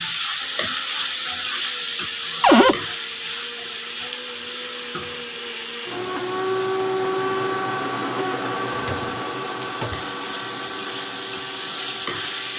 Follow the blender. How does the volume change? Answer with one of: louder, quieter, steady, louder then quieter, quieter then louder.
louder then quieter.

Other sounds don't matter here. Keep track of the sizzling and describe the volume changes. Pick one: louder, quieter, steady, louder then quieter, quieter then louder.
quieter then louder.